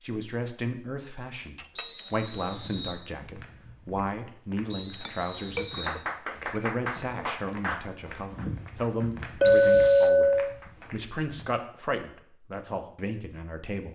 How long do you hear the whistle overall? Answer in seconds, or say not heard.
3 s.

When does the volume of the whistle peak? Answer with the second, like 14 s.
10 s.